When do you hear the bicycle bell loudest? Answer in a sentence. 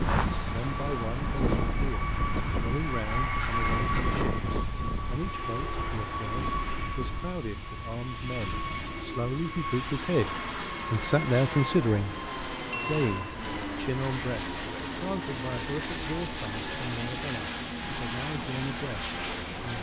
The loudest moment of the bicycle bell is at 13 seconds.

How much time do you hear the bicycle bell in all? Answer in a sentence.
You can hear the bicycle bell for 2 seconds altogether.